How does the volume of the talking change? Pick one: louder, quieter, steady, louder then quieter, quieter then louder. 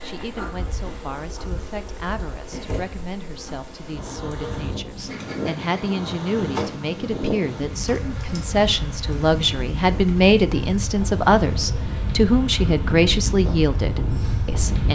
louder.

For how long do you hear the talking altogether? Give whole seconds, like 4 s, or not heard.
15 s.